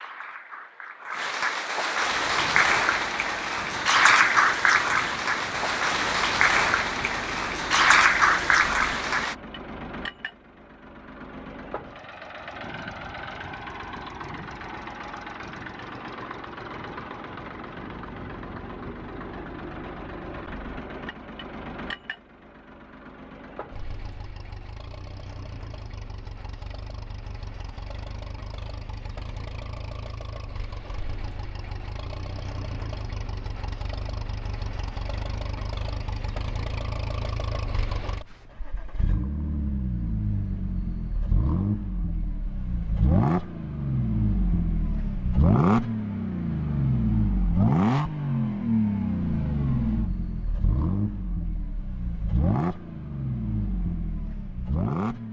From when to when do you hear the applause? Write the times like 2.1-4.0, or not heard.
0.0-9.3.